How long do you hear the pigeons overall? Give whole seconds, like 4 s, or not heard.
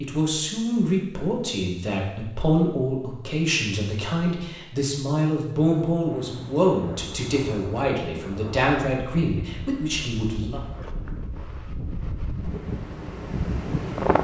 not heard.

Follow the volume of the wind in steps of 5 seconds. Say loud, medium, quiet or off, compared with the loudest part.
off, medium, loud.